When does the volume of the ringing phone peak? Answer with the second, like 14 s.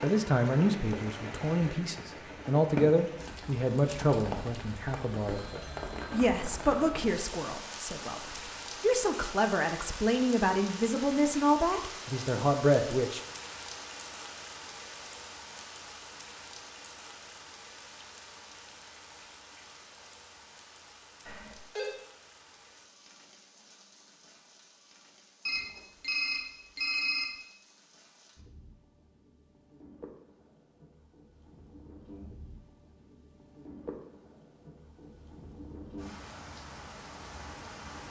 27 s.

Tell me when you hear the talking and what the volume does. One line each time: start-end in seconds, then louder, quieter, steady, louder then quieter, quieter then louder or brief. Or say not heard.
0.0-13.2 steady.